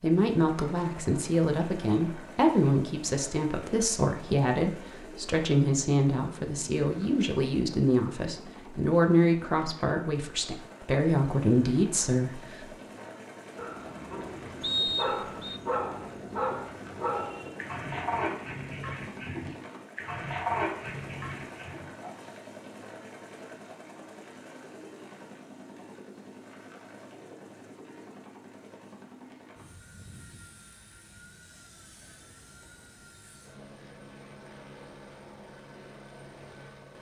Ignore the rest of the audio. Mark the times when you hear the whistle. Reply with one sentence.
You can hear the whistle from 14.6 to 15.6 s.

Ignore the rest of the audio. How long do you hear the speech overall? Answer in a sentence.
The speech can be heard for 13 seconds in total.